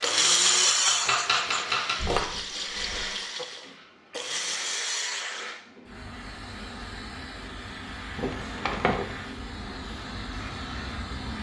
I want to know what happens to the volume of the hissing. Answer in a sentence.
The loudness of the hissing stays about the same.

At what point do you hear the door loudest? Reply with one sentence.
The loudest moment of the door is at 9 seconds.